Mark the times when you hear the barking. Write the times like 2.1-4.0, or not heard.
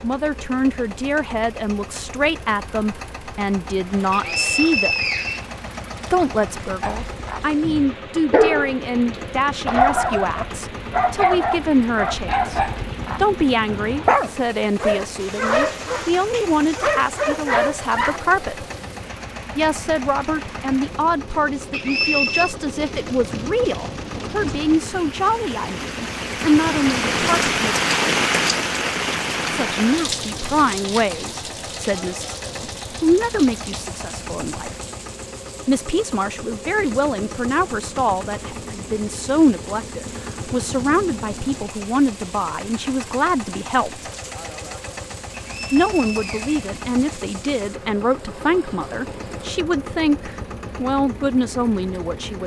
6.8-18.2.